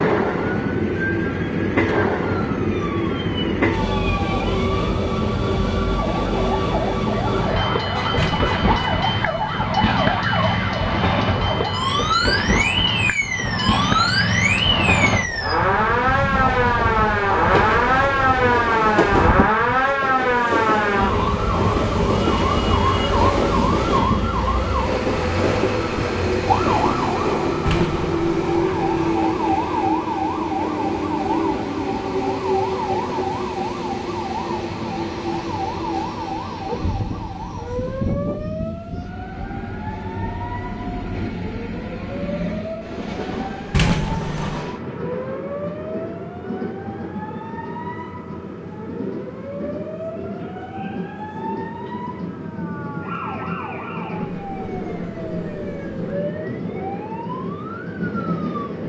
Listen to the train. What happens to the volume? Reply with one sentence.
The loudness of the train goes down.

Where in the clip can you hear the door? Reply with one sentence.
The door can be heard from 8.2 to 9.7 s, from 27.6 to 29.1 s and from 43.7 to 44.7 s.